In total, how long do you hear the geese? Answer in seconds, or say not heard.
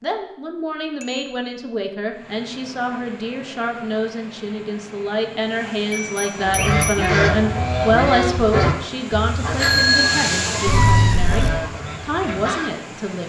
6 s.